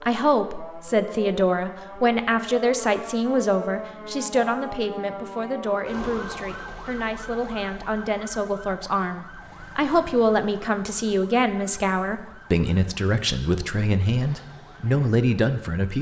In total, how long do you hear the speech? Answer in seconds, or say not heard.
16 s.